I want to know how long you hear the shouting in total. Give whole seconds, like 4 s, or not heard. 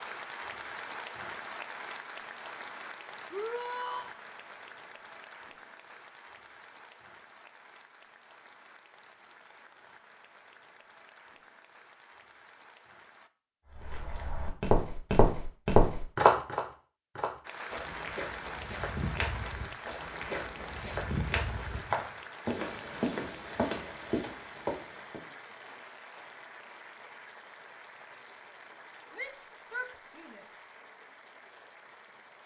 2 s.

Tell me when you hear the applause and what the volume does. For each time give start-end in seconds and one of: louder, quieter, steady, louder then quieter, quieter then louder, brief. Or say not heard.
0.0-13.3 quieter
17.4-32.4 quieter.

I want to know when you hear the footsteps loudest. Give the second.
16 s.